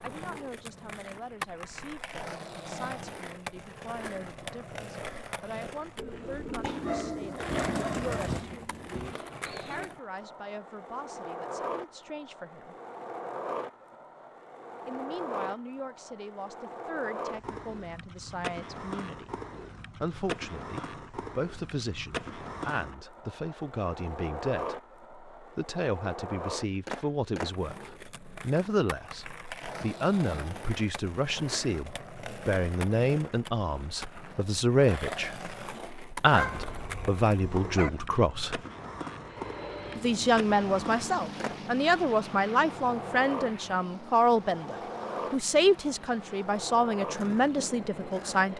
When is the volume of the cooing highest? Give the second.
8 s.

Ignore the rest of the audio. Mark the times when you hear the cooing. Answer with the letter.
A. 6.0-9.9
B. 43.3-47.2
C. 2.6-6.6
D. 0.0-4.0
A.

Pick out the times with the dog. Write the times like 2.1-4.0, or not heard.
6.6-8.4, 36.3-37.9.